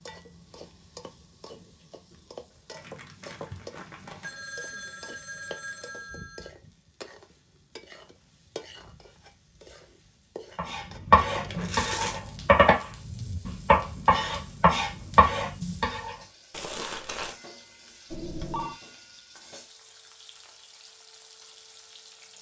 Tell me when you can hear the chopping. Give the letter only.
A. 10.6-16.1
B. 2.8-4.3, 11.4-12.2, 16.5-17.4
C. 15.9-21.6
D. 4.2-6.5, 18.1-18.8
A.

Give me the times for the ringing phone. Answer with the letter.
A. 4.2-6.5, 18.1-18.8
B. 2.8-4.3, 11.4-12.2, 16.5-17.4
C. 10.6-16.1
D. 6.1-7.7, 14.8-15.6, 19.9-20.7
A.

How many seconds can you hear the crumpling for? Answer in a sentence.
The crumpling can be heard for 3 seconds in total.